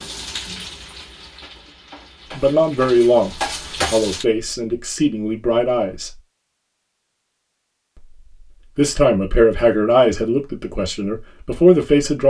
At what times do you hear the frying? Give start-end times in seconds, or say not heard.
0.0-4.2.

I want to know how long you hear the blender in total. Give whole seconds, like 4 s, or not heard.
not heard.